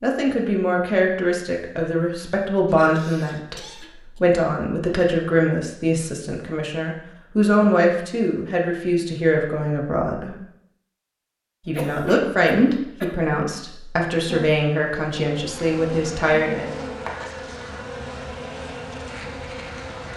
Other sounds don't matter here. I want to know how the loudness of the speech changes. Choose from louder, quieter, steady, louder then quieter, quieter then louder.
steady.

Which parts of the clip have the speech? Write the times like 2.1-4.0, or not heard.
0.0-10.3, 11.7-16.8.